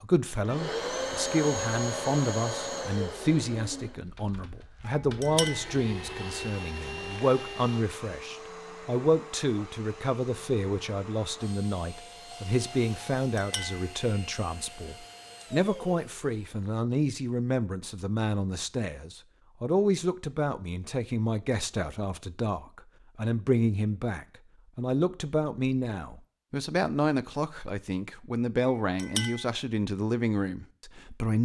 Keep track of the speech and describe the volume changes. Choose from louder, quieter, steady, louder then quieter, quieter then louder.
steady.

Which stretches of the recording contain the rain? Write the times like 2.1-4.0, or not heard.
not heard.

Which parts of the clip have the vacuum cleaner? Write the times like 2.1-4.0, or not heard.
0.5-16.6.